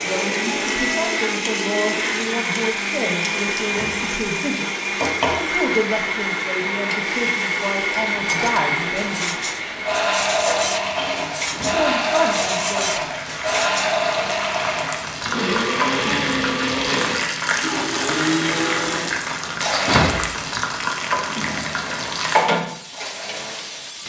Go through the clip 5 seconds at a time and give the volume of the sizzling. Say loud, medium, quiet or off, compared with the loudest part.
medium, medium, medium, loud, loud.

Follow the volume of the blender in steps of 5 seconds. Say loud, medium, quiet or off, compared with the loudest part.
loud, loud, loud, loud, medium.